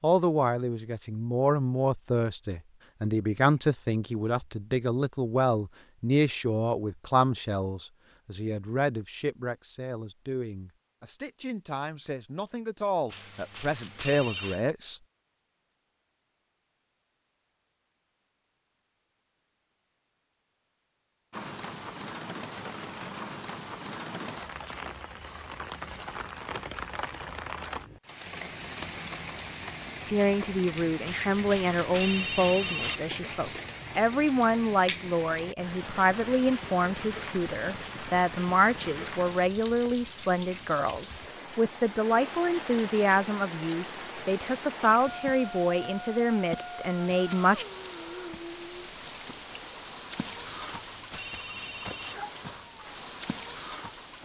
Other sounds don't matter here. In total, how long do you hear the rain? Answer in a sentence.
You can hear the rain for 33 seconds altogether.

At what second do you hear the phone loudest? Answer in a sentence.
The volume of the phone peaks at 32 seconds.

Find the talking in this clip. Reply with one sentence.
You can hear the talking from 0.0 to 15.0 s and from 30.1 to 47.6 s.